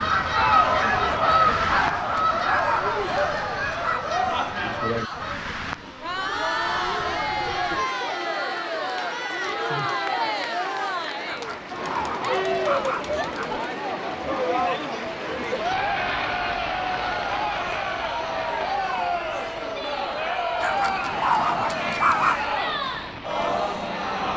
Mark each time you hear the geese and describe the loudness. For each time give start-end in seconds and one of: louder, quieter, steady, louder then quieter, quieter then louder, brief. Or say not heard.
0.0-5.3 quieter.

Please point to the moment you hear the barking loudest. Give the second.
22 s.